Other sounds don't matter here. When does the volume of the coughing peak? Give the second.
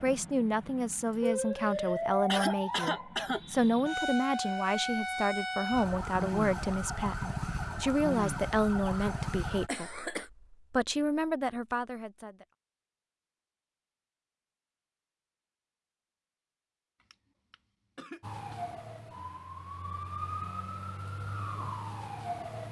2 s.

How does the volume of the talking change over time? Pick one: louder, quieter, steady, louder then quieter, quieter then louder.
steady.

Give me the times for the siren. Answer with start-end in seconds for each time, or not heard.
0.0-9.7, 18.2-22.6.